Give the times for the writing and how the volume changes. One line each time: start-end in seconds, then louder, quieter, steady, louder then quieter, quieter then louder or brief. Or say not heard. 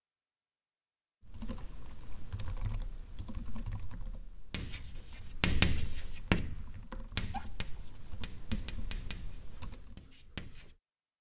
4.5-10.8 quieter.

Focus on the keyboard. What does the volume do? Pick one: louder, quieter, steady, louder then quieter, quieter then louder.
quieter then louder.